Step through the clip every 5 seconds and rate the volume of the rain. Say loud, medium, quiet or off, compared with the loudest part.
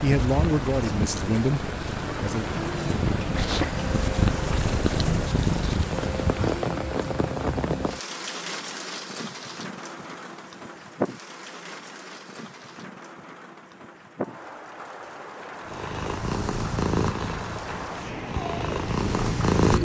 loud, loud, medium, medium.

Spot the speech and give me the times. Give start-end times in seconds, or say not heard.
0.0-2.5.